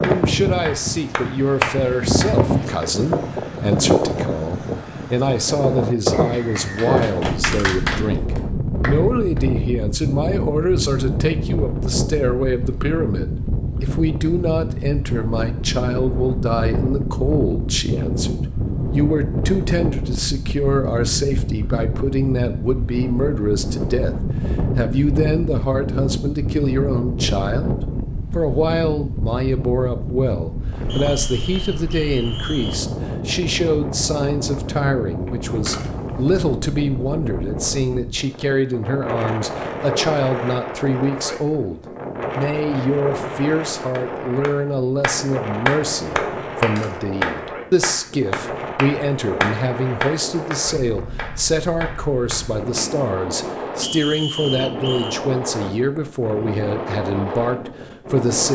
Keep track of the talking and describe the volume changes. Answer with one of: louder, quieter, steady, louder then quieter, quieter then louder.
steady.